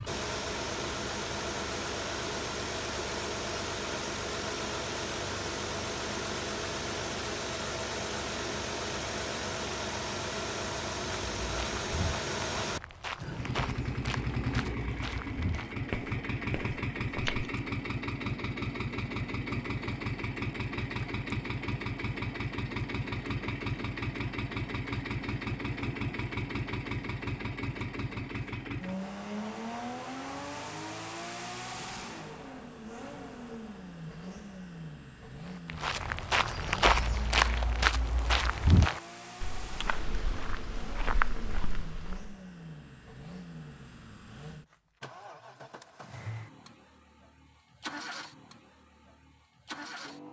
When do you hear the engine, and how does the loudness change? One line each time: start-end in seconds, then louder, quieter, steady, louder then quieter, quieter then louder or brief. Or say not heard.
0.0-50.2 quieter.